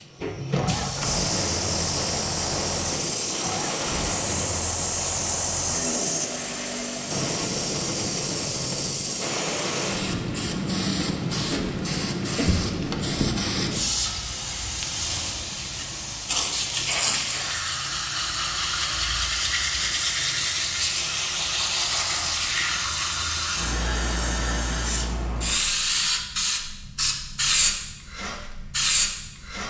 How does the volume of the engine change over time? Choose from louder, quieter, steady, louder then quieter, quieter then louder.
steady.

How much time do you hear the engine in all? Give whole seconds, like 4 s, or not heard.
7 s.